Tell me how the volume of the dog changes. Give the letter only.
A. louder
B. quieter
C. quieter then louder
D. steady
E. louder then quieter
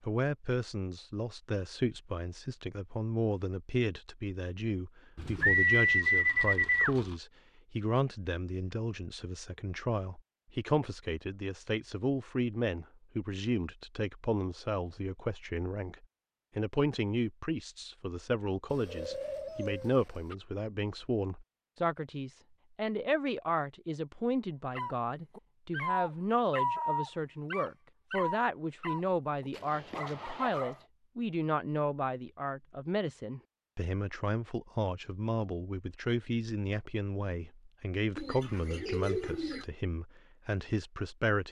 B.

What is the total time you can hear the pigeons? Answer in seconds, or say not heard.
5 s.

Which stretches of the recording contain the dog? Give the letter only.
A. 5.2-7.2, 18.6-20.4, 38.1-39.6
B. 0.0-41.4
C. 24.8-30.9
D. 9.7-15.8
C.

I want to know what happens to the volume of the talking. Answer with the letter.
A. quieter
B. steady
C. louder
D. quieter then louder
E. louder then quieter
B.